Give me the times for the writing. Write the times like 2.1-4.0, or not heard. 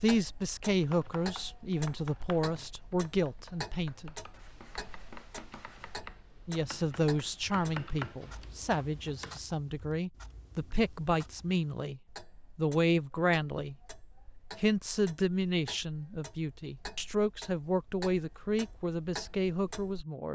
4.3-6.0.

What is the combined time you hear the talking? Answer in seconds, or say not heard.
17 s.